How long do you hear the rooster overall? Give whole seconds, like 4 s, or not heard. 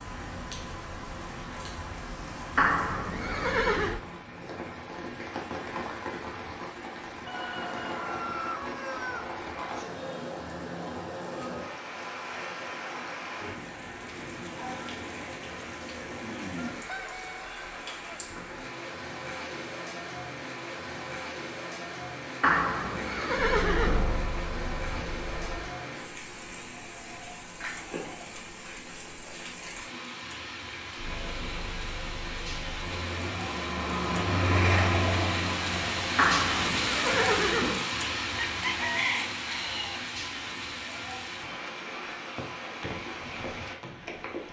5 s.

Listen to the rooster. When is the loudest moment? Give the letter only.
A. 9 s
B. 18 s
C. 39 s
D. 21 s
C.